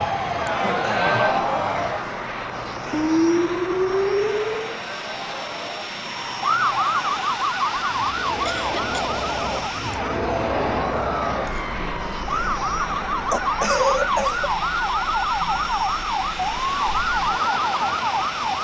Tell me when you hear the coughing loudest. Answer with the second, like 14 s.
14 s.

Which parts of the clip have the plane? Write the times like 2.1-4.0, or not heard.
0.0-18.5.